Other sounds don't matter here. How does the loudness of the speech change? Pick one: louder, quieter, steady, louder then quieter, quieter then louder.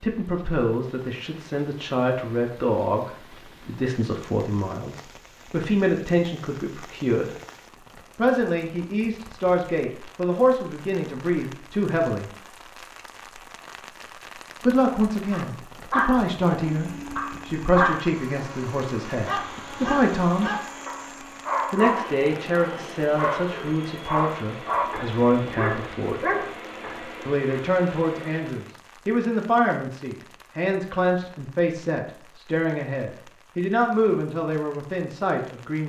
steady.